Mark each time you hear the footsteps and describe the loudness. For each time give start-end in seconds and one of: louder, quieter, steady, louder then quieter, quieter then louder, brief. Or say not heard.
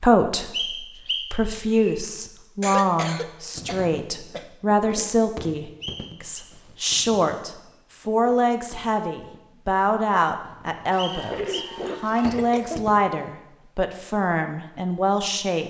not heard.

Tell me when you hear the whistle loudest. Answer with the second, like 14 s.
1 s.